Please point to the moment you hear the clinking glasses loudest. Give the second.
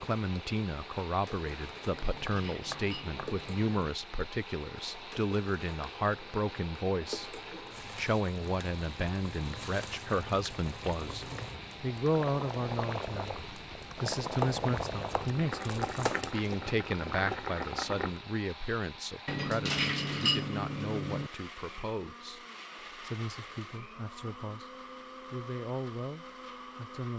20 s.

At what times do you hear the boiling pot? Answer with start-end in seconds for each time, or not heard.
0.2-18.2.